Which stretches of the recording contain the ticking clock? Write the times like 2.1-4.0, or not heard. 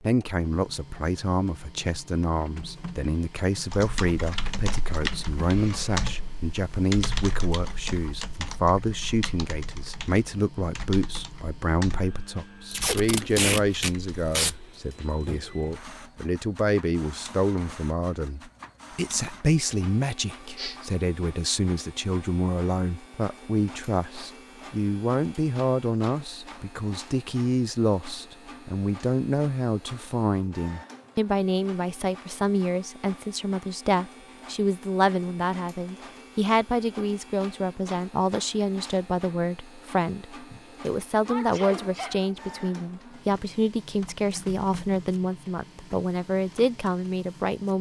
not heard.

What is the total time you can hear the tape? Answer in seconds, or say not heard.
2 s.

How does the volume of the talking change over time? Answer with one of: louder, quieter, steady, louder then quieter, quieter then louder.
steady.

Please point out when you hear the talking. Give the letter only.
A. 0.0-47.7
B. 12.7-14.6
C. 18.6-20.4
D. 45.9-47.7
A.